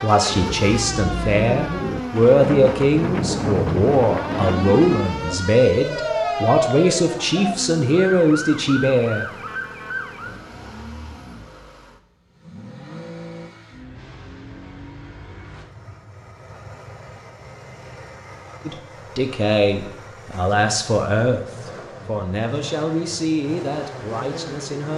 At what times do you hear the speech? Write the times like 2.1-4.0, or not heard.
0.0-9.2, 18.6-24.9.